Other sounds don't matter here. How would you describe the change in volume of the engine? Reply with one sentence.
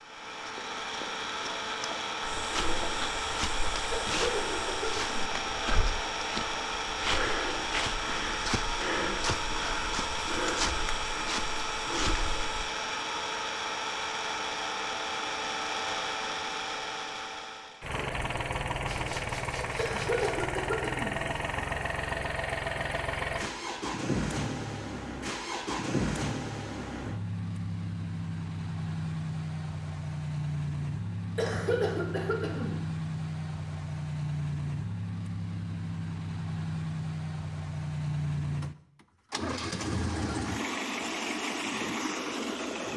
The volume of the engine stays about the same.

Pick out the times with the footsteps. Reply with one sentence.
The footsteps can be heard from 2.2 to 12.7 s.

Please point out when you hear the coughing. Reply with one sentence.
You can hear the coughing from 3.9 to 5.2 s, from 19.8 to 21.2 s and from 31.4 to 32.8 s.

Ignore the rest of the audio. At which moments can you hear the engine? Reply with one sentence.
You can hear the engine from 0.0 to 42.9 s.